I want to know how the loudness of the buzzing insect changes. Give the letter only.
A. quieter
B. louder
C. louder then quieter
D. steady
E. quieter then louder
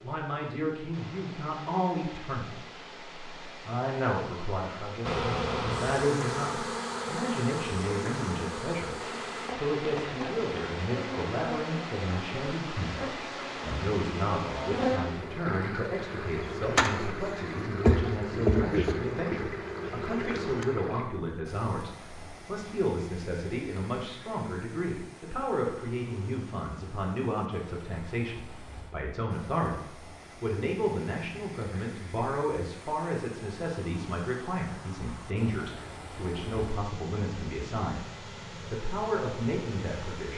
E.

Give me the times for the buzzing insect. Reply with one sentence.
The buzzing insect can be heard from 5.0 to 20.6 s.